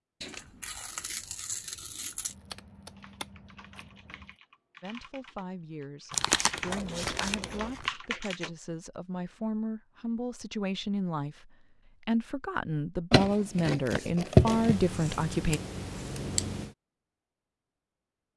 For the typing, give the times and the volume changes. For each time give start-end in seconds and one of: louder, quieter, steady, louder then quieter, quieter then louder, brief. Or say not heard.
3.0-8.5 louder.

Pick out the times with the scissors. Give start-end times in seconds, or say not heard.
2.2-4.3, 6.7-7.8, 14.4-16.8.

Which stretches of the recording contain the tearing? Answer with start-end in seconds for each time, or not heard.
0.2-2.4, 6.1-7.9, 13.1-14.8.